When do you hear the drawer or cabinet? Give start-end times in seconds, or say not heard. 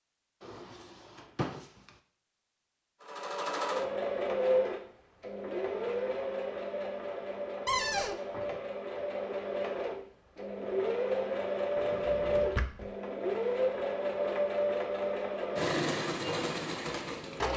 0.4-1.9, 7.7-8.2, 11.8-12.9.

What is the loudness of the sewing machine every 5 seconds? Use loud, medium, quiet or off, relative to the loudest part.
loud, medium, loud, loud.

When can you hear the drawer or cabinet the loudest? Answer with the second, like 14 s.
8 s.